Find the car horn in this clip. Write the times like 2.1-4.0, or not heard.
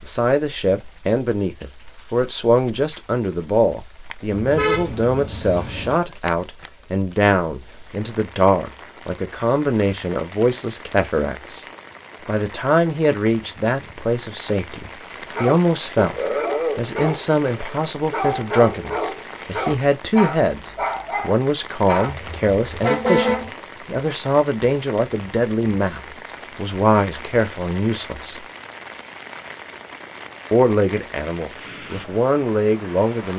4.3-6.0, 22.1-23.5.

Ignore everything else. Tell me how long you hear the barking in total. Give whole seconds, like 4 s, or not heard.
7 s.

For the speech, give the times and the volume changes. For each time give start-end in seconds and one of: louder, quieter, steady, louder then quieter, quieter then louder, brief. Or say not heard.
0.0-11.6 steady
12.2-28.4 steady
30.5-33.3 brief.